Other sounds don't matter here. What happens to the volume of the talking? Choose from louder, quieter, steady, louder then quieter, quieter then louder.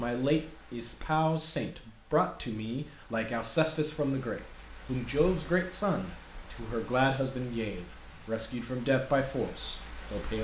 steady.